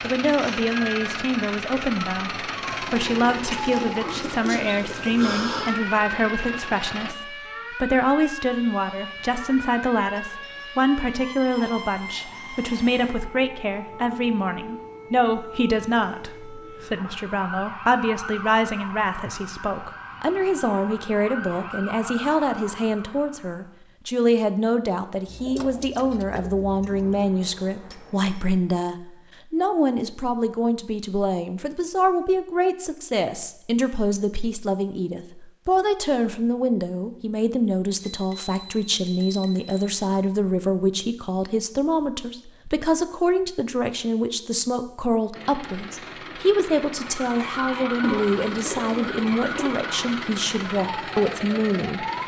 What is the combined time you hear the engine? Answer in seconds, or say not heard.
14 s.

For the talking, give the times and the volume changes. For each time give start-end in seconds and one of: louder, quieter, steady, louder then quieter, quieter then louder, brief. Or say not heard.
0.0-52.0 steady.